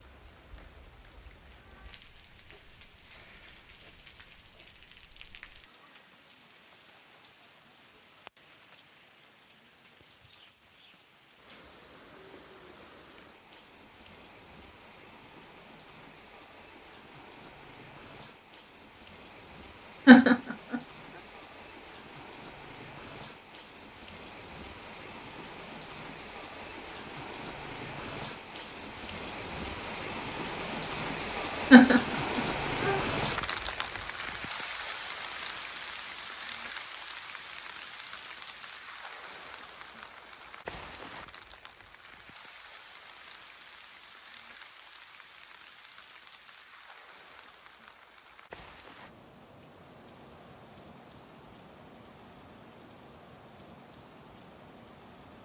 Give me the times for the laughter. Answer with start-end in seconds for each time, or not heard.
20.1-20.8, 31.7-33.0.